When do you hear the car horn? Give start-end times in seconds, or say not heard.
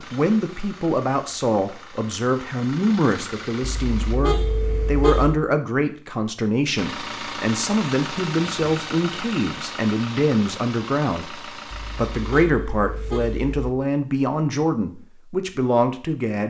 3.6-5.4, 11.7-13.7.